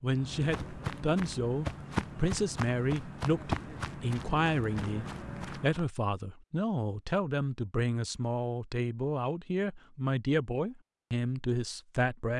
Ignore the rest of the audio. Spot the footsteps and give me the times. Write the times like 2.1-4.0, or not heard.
0.1-5.8.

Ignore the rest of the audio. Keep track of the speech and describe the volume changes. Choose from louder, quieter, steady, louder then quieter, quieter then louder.
steady.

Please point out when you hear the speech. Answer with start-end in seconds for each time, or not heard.
0.0-12.3.